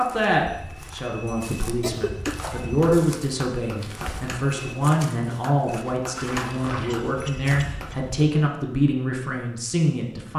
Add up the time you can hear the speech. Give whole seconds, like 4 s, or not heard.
10 s.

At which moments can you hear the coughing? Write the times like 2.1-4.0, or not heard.
1.8-2.4, 6.8-8.0.